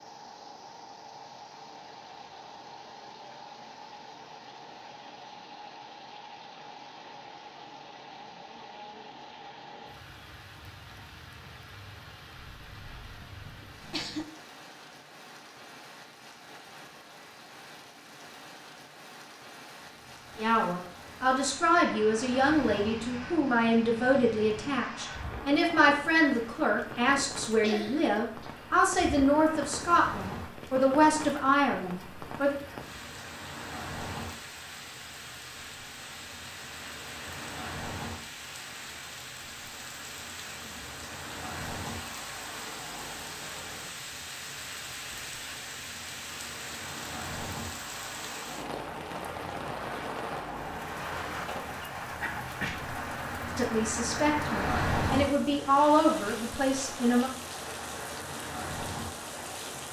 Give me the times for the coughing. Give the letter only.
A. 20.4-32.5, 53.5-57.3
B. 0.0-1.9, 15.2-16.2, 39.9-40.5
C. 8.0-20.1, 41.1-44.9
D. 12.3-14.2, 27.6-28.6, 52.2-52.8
D.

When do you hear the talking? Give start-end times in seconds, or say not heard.
20.4-32.5, 53.5-57.3.